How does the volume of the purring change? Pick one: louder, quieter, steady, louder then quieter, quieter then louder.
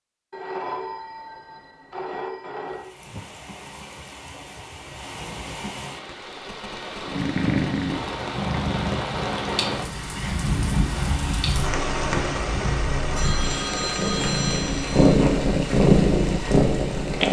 quieter then louder.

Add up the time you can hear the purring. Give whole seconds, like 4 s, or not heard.
10 s.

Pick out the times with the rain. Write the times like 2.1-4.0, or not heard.
2.6-17.2.